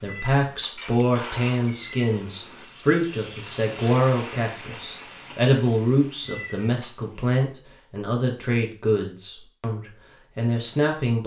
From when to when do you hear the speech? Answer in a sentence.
You can hear the speech from 0.0 to 11.2 s.